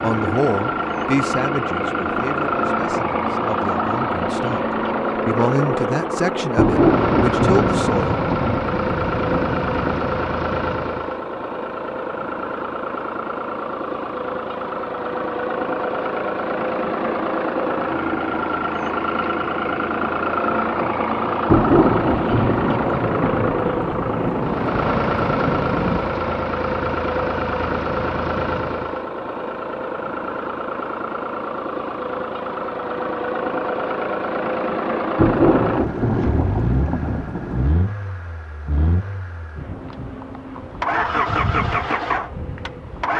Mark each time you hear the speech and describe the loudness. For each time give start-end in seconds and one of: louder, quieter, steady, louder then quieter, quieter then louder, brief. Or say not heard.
0.0-8.2 quieter then louder.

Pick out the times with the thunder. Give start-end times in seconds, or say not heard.
6.5-10.1, 21.4-26.1, 35.1-37.6.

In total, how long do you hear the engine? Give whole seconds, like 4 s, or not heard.
43 s.